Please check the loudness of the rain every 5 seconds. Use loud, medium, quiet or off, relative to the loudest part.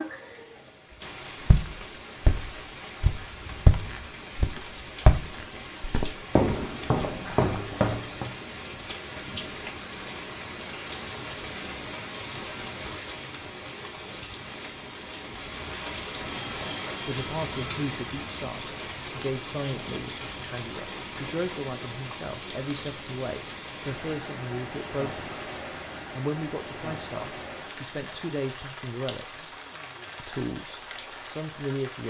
medium, loud, loud, loud, loud, loud, medium.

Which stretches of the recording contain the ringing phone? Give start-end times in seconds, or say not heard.
16.2-18.1.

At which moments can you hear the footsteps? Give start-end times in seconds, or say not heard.
1.4-8.3.